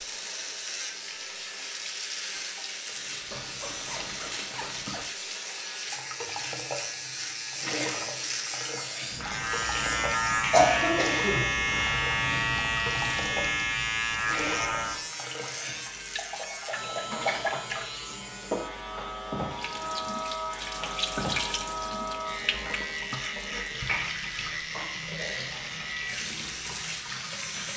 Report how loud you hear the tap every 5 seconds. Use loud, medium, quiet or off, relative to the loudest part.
medium, loud, loud, loud, loud, loud.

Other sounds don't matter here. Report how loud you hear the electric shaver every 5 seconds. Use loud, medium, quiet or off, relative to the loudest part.
medium, medium, loud, medium, medium, medium.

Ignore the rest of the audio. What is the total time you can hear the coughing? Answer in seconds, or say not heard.
2 s.